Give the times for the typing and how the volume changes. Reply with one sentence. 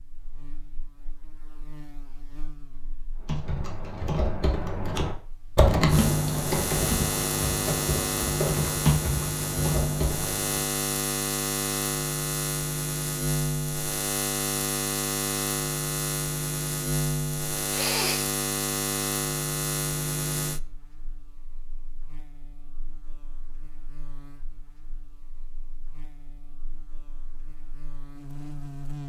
You can hear the typing from 3.2 to 10.7 s, getting louder then quieter.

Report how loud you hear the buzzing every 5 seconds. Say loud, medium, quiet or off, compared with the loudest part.
quiet, loud, loud, loud, medium, quiet.